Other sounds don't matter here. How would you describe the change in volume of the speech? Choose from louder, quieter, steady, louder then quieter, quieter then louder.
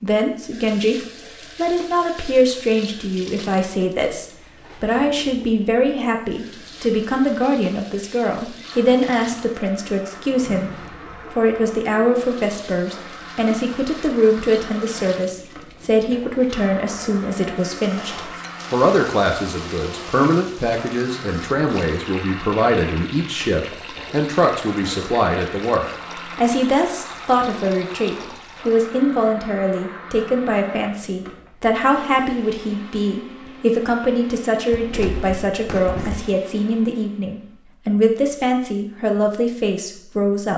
steady.